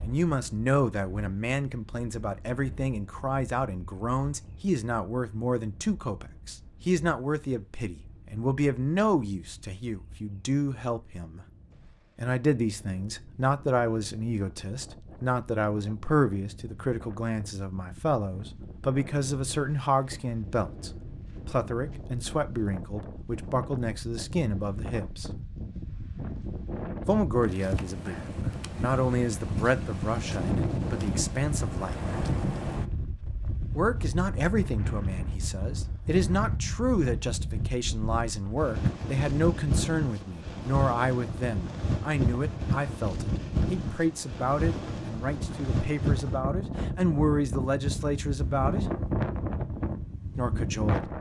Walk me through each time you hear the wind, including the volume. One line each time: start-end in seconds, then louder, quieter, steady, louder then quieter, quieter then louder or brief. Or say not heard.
0.0-51.1 louder.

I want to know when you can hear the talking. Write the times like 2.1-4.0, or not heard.
0.0-11.4, 12.2-25.3, 27.1-31.9, 33.8-48.9, 50.4-51.1.